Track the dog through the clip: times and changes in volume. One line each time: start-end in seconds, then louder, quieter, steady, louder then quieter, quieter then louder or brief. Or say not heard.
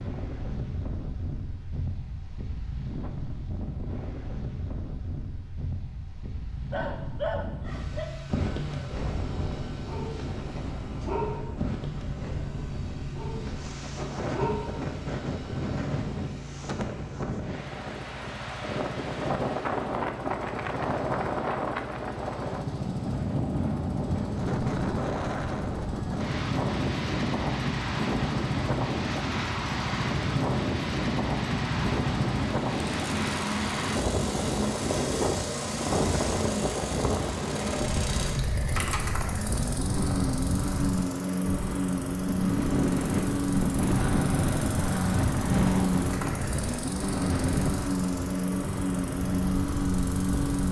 6.7-14.8 quieter.